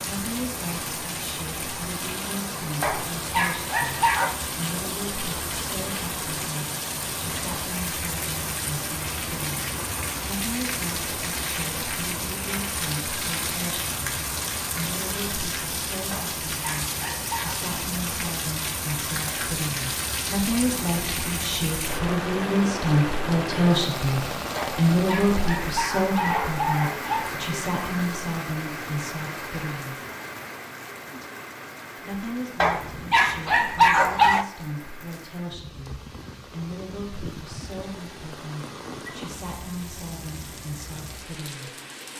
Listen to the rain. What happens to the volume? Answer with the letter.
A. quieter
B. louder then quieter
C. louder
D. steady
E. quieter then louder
A.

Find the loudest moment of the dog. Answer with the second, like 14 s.
34 s.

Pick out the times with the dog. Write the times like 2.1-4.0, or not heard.
2.8-4.3, 16.1-17.6, 24.6-27.3, 32.6-34.5.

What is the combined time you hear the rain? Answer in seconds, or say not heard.
42 s.